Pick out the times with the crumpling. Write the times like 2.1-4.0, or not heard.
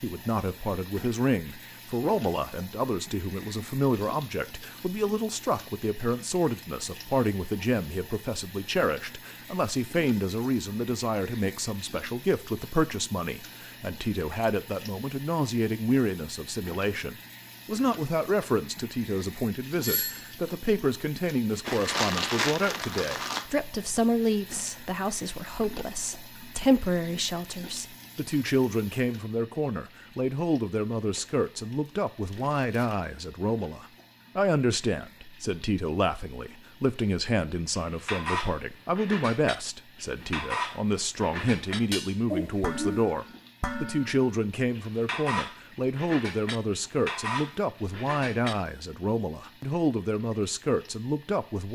21.6-23.4, 31.1-33.1.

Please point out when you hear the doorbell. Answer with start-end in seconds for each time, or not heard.
19.8-20.3, 42.3-43.1.